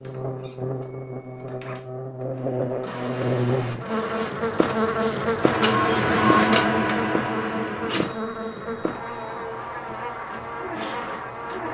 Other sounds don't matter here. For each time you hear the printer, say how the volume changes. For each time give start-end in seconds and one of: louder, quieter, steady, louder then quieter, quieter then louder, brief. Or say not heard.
0.0-11.7 louder then quieter.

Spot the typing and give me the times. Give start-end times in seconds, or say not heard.
not heard.